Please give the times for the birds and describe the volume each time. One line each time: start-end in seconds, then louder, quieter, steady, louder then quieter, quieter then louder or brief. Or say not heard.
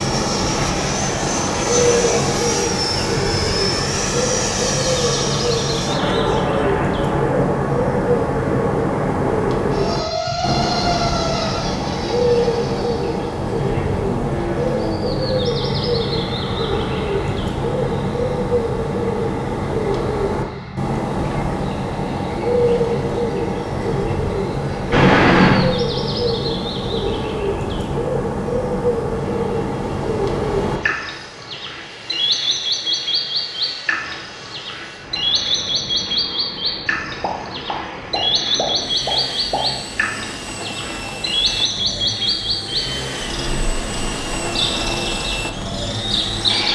0.0-46.6 steady.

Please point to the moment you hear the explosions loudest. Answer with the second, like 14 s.
25 s.